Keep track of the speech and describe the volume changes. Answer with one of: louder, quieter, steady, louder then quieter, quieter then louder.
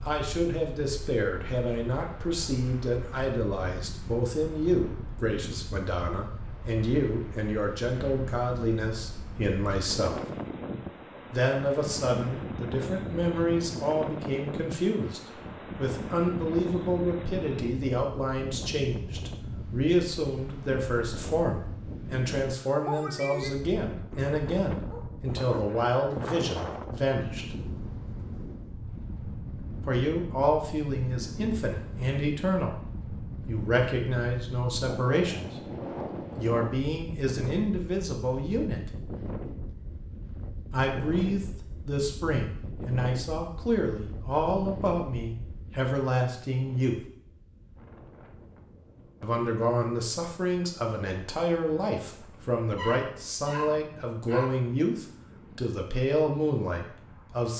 steady.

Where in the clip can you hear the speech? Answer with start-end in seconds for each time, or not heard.
0.0-10.3, 11.3-27.6, 29.9-38.9, 40.7-47.0, 49.2-57.5.